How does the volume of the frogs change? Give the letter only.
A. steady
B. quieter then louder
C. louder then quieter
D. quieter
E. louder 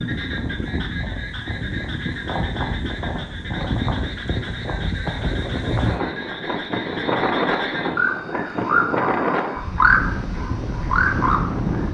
E.